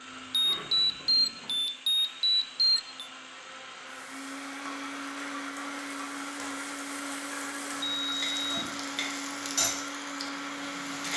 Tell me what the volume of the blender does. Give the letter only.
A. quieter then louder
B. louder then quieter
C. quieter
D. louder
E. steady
D.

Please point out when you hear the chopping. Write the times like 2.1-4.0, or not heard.
not heard.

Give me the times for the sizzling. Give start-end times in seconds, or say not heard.
0.0-11.1.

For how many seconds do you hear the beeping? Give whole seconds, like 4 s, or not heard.
4 s.